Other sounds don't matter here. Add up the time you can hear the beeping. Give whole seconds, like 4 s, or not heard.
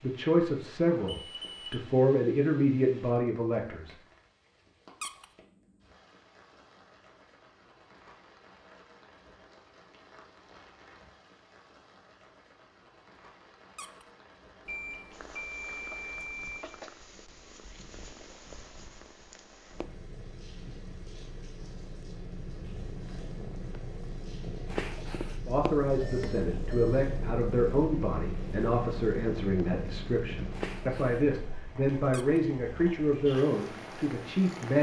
4 s.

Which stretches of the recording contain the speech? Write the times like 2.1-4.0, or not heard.
0.0-4.0, 25.4-34.7.